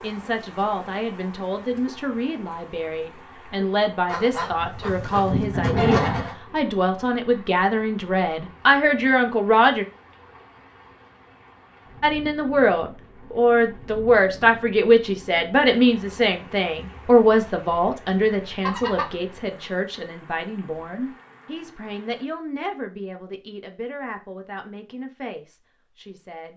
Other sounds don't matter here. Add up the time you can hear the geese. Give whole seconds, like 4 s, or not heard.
3 s.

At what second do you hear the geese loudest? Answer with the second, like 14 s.
6 s.